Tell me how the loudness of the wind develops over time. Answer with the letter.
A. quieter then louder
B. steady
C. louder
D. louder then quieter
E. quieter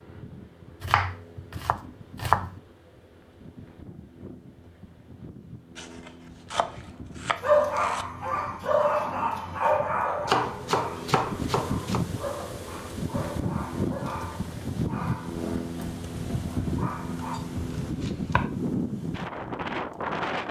C.